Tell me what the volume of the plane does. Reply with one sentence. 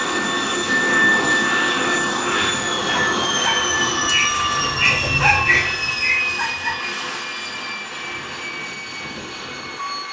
The loudness of the plane goes down.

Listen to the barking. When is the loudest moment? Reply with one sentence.
The loudest moment of the barking is at 5 seconds.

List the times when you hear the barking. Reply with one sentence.
You can hear the barking from 2.2 to 6.8 s.